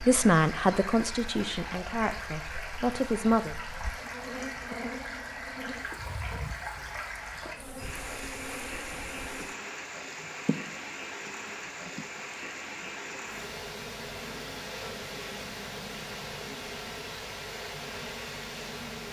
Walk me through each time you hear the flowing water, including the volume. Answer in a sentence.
The flowing water can be heard from 0.0 to 19.0 s, at a steady volume.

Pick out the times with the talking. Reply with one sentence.
The talking can be heard from 0.0 to 3.5 s.